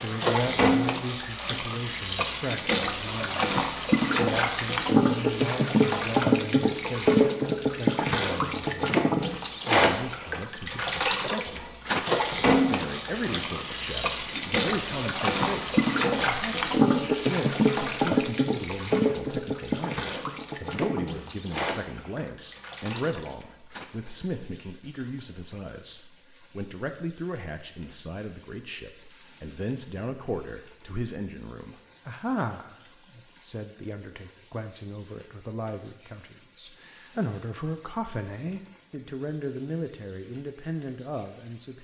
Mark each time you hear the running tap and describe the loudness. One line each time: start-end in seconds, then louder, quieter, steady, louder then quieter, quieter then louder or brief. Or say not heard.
0.0-41.7 quieter.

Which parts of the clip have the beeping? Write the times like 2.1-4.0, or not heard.
not heard.